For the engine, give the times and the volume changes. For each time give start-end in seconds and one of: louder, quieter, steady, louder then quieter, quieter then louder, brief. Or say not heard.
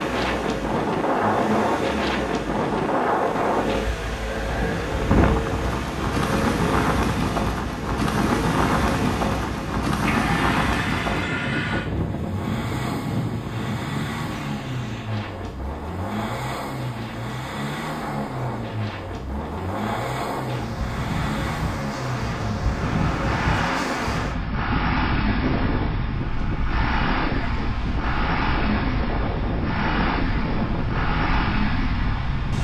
0.0-32.5 steady.